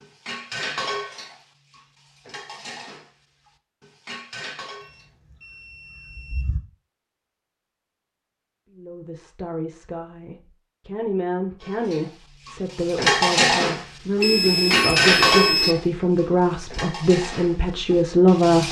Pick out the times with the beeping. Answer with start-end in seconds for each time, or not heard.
4.8-6.6, 14.2-15.8.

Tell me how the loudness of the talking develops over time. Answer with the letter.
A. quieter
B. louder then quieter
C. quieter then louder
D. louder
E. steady
D.